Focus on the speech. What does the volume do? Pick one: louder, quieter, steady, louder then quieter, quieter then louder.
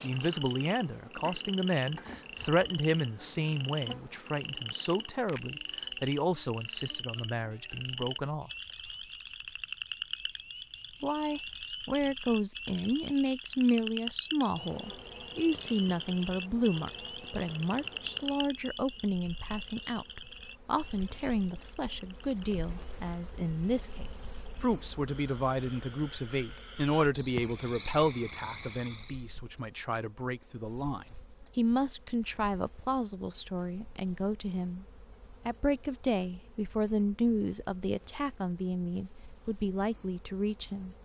steady.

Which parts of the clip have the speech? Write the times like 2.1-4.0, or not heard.
0.0-8.5, 11.0-34.9, 35.5-41.0.